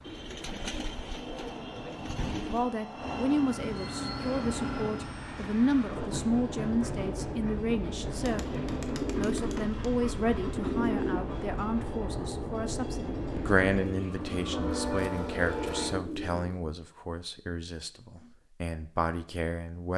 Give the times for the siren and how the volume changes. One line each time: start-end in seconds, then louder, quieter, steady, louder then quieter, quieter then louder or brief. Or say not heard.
not heard.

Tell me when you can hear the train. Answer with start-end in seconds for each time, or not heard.
0.0-16.0.